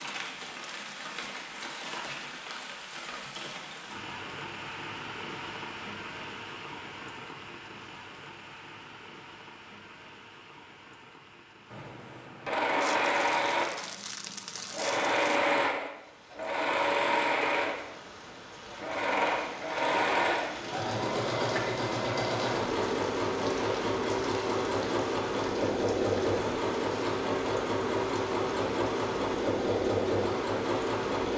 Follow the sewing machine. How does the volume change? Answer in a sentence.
The volume of the sewing machine stays about the same.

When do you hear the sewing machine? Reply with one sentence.
The sewing machine can be heard from 11.7 to 31.3 s.